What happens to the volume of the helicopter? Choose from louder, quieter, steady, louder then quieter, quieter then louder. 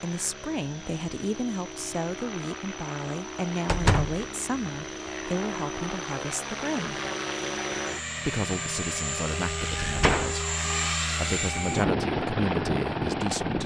louder.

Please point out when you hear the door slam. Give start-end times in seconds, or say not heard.
3.6-4.2, 9.8-10.6.